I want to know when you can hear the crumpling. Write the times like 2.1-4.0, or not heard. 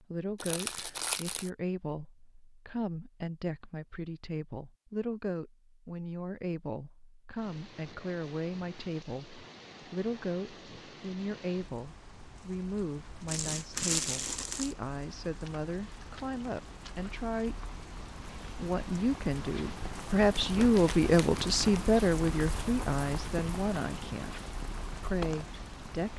0.4-1.5, 13.2-14.8, 20.3-21.9.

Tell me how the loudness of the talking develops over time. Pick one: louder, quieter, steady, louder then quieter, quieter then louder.
louder.